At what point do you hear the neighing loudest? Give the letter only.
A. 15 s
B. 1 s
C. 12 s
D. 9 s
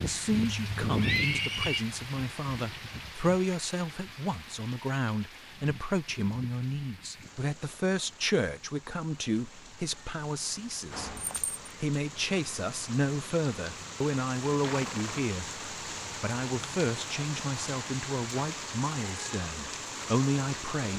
B.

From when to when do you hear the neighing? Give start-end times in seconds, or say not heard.
0.3-1.9, 11.2-11.6, 14.5-15.3.